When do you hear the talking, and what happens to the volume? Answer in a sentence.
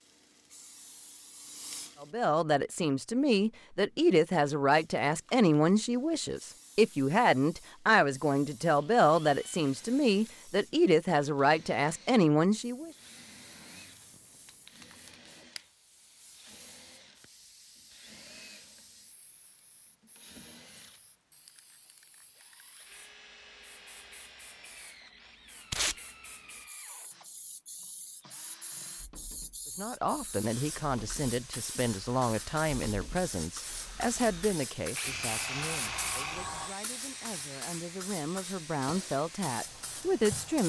You can hear the talking from 2.0 to 12.9 s, at a steady volume; and from 29.8 to 40.6 s, getting quieter then louder.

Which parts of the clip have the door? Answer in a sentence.
The door can be heard from 35.0 to 36.8 s.